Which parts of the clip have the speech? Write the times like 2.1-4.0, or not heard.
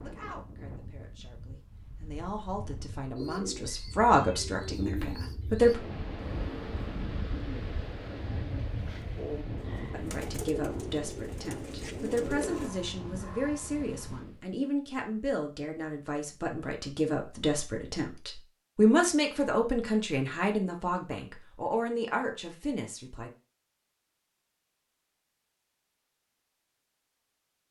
0.0-5.8, 9.9-23.3.